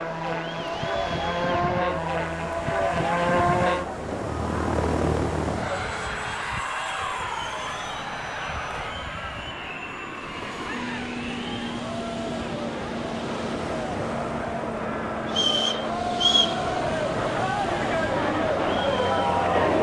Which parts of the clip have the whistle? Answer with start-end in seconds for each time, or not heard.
15.2-16.6.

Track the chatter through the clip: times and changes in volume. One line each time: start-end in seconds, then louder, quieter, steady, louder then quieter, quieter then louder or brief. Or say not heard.
0.0-19.7 louder.